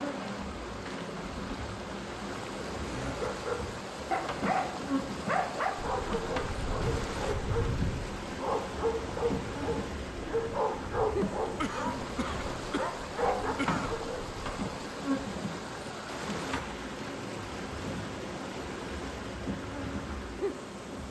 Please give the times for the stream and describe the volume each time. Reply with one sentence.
The stream can be heard from 0.0 to 21.0 s, at a steady volume.